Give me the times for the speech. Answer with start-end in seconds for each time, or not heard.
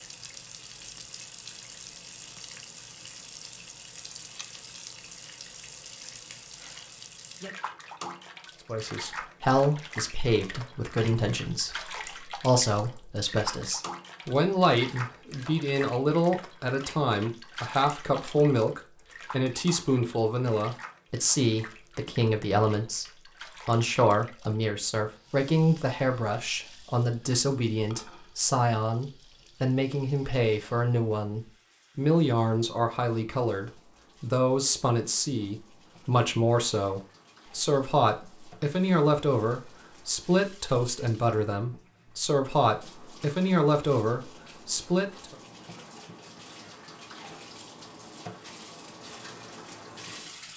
8.7-45.4.